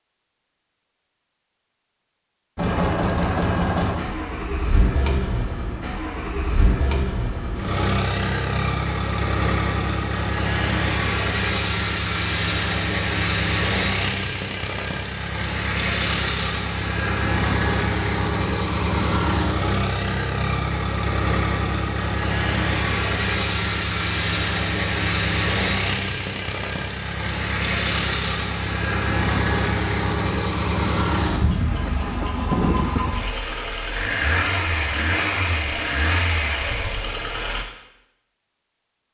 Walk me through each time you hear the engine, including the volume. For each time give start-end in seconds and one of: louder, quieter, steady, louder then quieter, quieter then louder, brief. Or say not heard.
2.5-37.6 steady.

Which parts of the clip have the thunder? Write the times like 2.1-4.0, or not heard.
31.6-33.1.